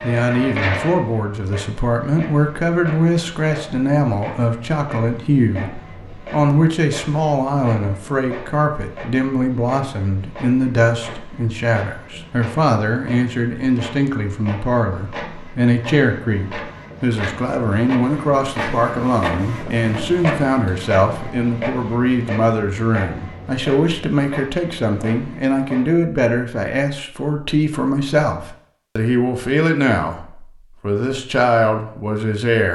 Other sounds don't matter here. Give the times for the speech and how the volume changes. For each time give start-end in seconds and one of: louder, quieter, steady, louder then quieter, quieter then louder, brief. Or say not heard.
0.0-30.1 steady
30.8-32.7 brief.